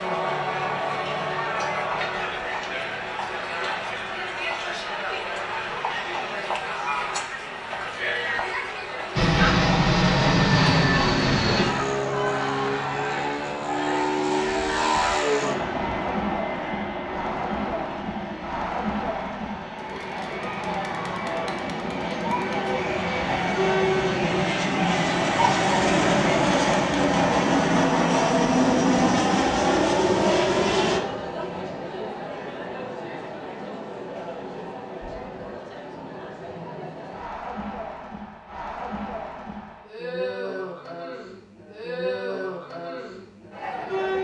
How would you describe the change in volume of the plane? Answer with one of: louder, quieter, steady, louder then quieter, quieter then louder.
quieter then louder.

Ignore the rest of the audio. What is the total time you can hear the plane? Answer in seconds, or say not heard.
22 s.